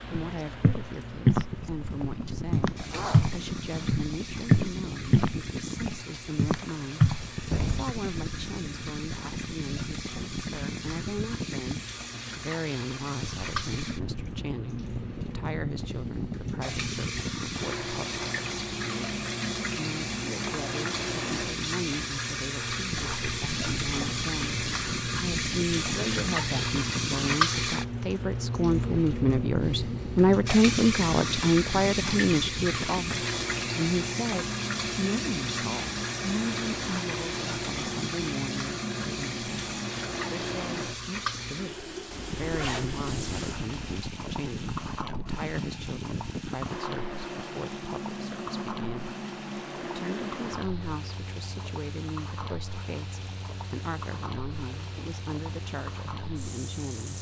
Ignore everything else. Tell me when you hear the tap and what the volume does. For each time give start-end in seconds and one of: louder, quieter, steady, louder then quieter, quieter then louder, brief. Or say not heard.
0.0-57.1 louder then quieter.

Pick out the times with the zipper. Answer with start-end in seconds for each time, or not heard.
2.9-4.0, 42.1-44.0.